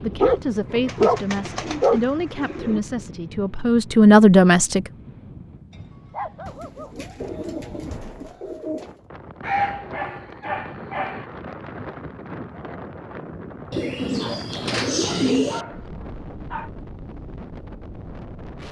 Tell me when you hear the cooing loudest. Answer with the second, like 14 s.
15 s.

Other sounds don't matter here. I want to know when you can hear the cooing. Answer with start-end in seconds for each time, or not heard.
0.8-2.8, 6.5-9.0, 13.7-15.7.